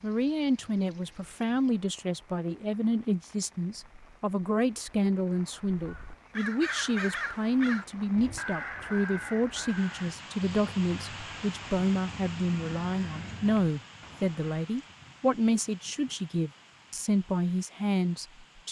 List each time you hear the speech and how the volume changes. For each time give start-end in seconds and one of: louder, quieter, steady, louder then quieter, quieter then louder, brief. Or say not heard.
0.0-18.6 steady.